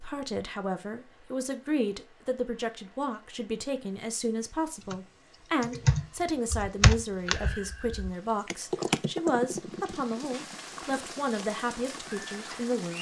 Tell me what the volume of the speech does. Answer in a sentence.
The loudness of the speech stays about the same.